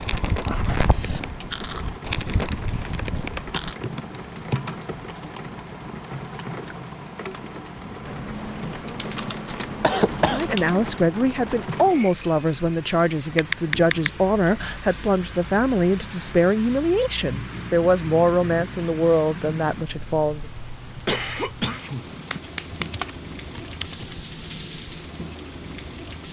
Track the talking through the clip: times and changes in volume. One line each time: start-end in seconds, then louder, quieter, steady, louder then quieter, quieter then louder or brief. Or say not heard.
10.3-20.4 steady.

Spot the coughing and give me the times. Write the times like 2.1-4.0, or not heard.
0.1-1.2, 9.8-10.4, 21.1-22.9.